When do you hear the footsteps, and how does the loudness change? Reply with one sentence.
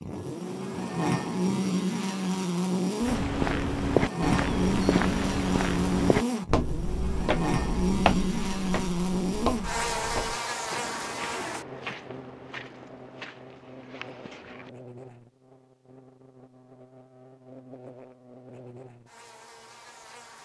You can hear the footsteps from 3.0 to 14.7 s, getting quieter.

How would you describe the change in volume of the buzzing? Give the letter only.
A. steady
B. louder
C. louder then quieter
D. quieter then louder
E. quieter
E.